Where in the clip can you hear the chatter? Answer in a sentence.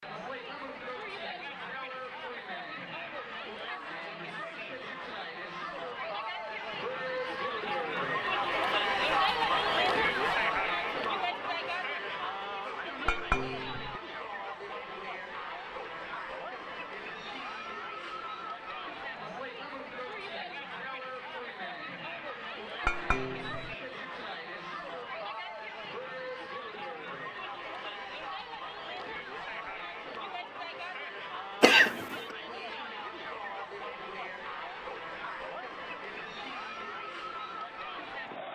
You can hear the chatter from 0.0 to 38.5 s.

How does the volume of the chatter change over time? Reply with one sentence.
The loudness of the chatter goes up, then down.